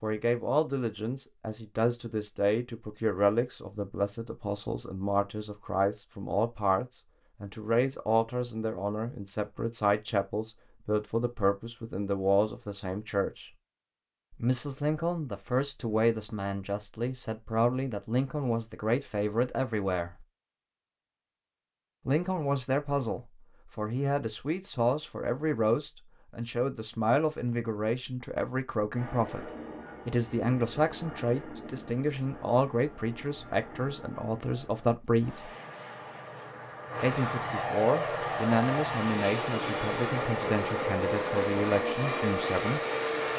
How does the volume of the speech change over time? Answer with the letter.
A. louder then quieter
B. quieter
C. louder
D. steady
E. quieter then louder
D.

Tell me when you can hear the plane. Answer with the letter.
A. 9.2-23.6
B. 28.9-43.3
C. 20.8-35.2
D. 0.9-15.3
B.